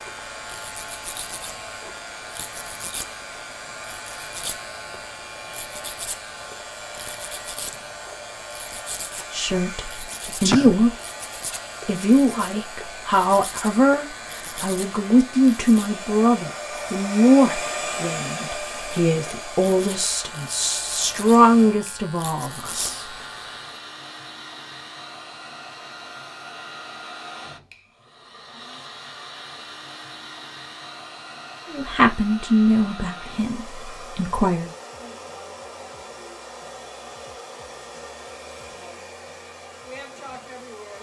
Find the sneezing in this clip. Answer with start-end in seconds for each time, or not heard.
10.2-10.8.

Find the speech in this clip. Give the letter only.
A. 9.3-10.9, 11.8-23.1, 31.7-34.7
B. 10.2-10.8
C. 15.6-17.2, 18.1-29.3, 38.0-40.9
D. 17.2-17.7
A.